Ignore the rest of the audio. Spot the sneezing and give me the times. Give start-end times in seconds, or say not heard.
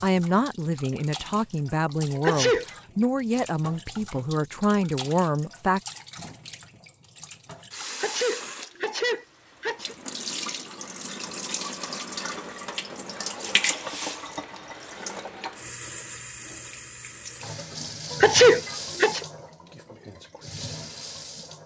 2.1-2.8, 8.0-9.9, 18.2-19.2.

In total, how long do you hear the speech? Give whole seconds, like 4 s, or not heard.
6 s.